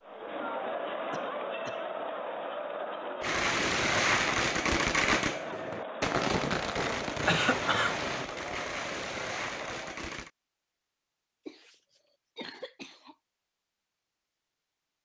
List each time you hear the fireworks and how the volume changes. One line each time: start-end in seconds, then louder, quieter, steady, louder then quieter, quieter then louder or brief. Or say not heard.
3.2-10.3 quieter.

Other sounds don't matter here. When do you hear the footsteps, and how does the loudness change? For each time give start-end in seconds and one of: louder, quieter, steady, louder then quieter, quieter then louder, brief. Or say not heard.
not heard.